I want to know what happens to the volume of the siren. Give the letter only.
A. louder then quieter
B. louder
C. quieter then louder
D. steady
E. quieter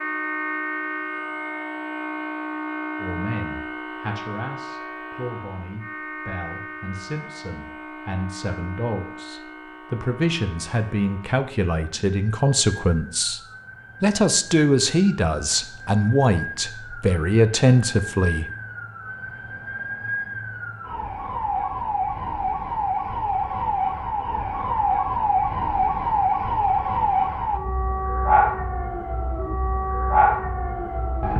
C.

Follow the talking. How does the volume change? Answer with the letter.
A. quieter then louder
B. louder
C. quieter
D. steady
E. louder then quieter
B.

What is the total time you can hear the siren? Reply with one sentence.
You can hear the siren for 31 seconds altogether.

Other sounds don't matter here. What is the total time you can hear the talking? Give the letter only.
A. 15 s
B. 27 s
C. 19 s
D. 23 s
A.